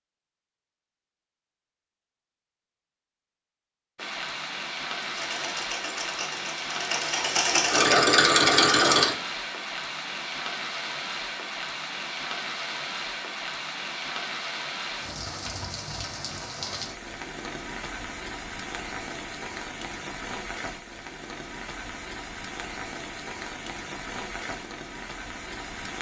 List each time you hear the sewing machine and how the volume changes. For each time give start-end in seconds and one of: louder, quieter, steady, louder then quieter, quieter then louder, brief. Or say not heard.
5.0-9.2 louder.